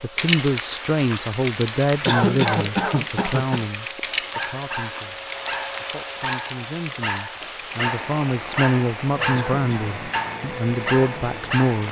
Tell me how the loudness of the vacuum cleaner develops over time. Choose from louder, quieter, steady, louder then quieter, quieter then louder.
louder then quieter.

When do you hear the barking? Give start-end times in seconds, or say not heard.
4.3-11.8.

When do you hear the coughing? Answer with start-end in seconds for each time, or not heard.
2.0-3.6, 9.3-9.9.